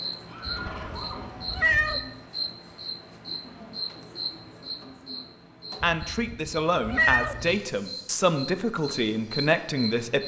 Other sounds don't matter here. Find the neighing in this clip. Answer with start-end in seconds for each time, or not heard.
0.2-1.6.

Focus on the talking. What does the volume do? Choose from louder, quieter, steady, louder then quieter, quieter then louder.
steady.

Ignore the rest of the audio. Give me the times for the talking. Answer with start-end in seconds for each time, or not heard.
5.8-10.2.